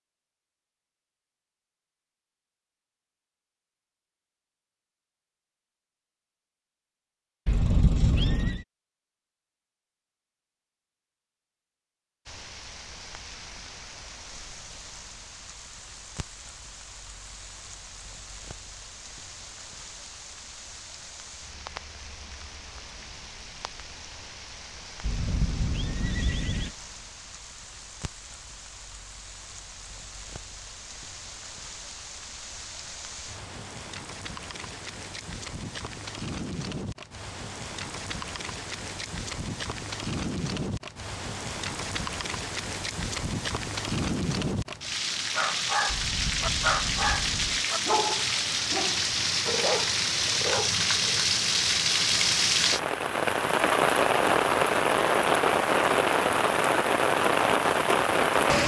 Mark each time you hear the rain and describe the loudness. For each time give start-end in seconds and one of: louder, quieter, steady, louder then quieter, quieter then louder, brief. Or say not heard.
12.2-58.6 louder.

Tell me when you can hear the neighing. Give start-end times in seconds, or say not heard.
7.5-8.7, 25.0-26.8, 45.9-47.6.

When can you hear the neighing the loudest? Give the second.
8 s.